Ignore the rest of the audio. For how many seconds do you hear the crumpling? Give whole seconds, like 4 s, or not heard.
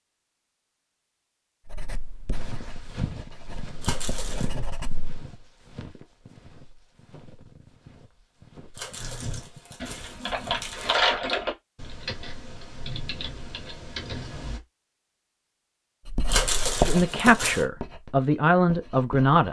4 s.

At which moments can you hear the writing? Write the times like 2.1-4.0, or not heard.
1.6-5.1, 16.1-19.4.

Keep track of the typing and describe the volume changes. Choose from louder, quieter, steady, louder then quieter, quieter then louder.
louder then quieter.